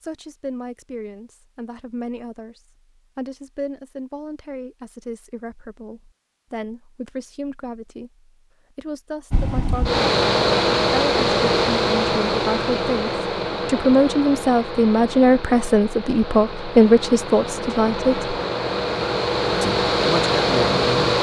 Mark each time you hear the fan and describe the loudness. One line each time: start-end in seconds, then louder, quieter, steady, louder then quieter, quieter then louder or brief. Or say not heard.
9.3-21.1 quieter then louder.